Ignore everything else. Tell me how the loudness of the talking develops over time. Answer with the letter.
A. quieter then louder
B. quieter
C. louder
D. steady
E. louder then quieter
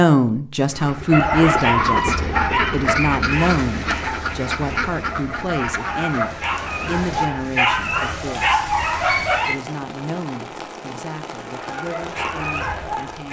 B.